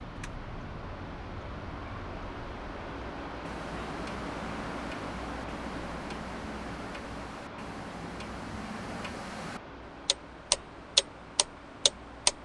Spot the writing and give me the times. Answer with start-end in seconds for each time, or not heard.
not heard.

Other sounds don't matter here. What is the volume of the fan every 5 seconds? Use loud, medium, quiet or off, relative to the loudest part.
loud, loud, medium.